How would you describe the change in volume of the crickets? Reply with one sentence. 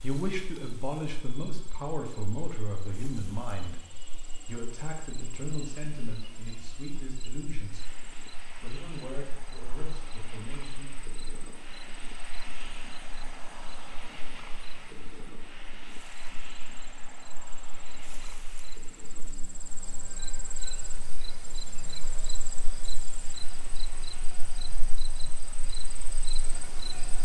The volume of the crickets goes up.